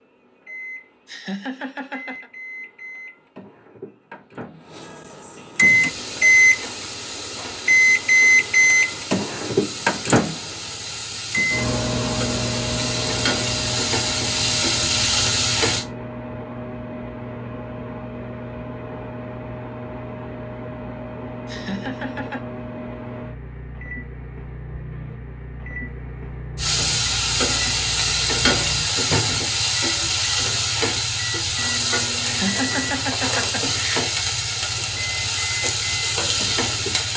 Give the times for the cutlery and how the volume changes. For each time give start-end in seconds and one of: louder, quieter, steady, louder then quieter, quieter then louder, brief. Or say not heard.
not heard.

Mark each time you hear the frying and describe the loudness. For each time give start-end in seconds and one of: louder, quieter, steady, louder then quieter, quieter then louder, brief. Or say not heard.
5.5-15.8 louder
26.6-37.1 steady.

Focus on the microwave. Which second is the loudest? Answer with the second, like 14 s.
8 s.